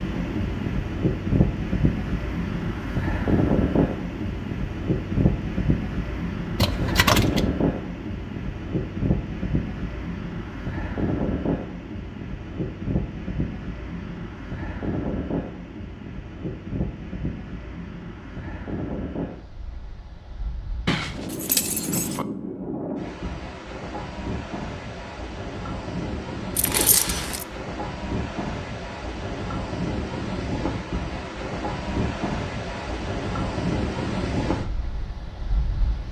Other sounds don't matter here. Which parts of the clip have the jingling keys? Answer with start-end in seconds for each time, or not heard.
6.5-7.5, 20.9-22.2, 26.6-27.4.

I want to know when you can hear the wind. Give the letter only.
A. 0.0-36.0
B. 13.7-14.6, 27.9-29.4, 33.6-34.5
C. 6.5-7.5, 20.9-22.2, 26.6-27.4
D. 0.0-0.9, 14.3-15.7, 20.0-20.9
A.